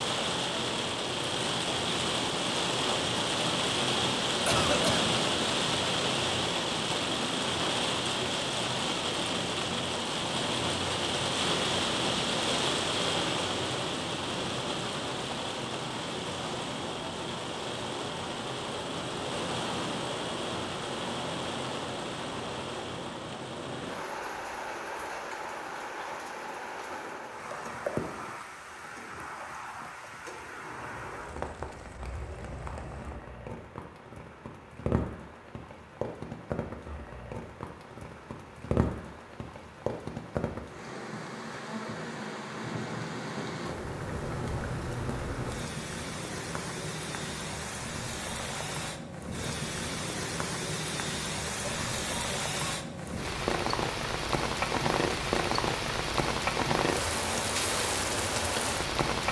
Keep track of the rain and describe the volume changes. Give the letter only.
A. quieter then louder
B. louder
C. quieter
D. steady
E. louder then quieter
A.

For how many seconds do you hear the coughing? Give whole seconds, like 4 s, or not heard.
2 s.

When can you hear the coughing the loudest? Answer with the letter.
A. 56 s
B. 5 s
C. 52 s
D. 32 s
B.